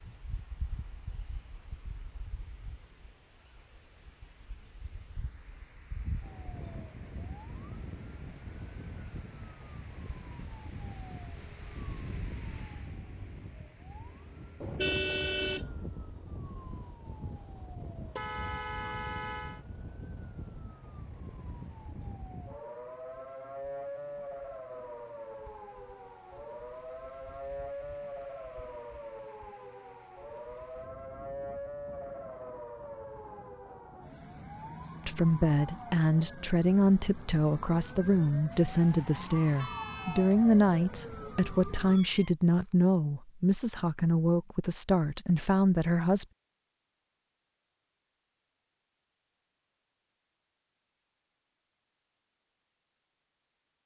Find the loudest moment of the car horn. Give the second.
15 s.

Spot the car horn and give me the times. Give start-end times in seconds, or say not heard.
14.6-15.7, 18.1-19.6, 38.5-40.4.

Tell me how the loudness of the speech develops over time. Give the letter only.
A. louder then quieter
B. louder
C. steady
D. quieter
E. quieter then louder
C.